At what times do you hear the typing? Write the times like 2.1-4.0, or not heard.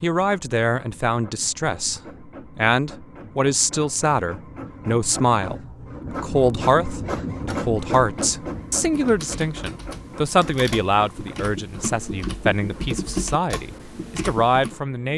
8.1-14.8.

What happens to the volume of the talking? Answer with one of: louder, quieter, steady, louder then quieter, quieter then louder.
steady.